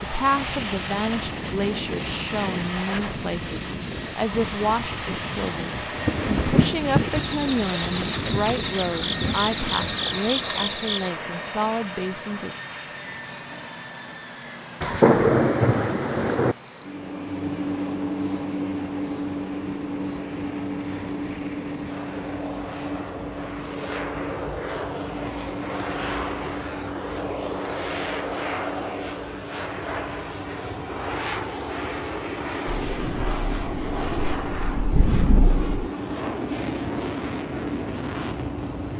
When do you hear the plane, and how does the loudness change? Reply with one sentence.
You can hear the plane from 0.0 to 38.9 s, getting quieter then louder.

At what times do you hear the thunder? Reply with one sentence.
You can hear the thunder from 6.0 to 9.9 s, from 14.8 to 16.6 s and from 32.6 to 35.9 s.